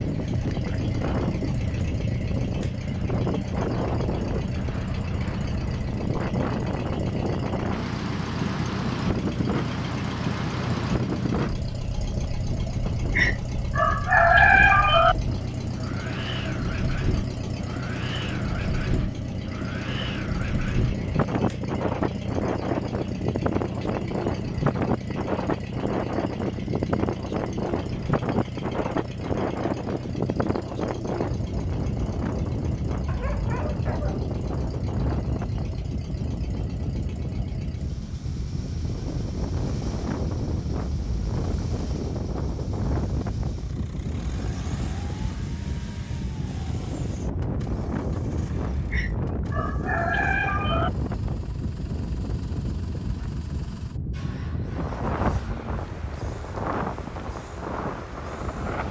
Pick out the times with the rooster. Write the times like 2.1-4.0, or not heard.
13.2-15.2, 48.9-50.9.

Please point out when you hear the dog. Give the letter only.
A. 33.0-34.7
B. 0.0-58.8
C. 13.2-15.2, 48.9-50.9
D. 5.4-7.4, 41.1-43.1
A.